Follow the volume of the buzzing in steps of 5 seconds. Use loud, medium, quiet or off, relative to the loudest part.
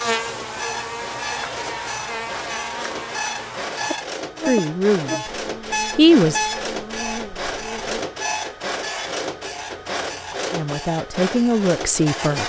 loud, medium, off.